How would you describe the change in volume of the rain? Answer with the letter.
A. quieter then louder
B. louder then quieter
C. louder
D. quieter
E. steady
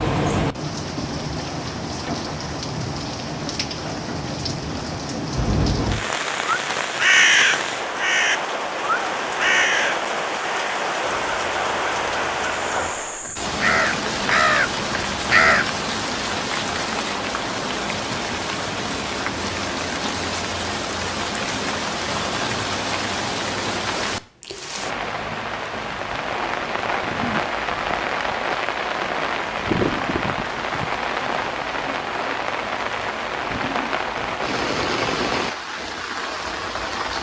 E.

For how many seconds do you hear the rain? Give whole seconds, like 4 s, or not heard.
37 s.